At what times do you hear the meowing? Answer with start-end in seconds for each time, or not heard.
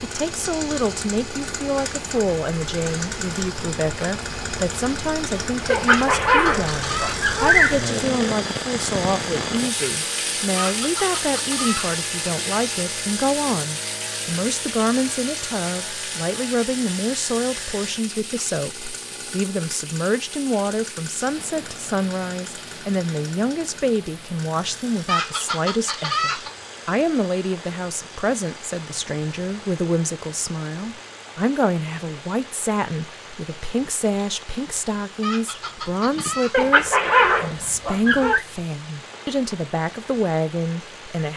not heard.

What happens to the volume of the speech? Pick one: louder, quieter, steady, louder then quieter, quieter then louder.
steady.